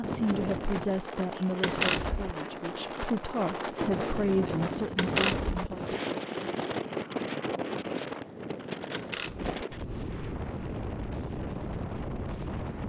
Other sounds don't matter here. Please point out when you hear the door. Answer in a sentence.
The door can be heard from 1.6 to 2.4 s, from 5.0 to 5.5 s and from 8.9 to 9.6 s.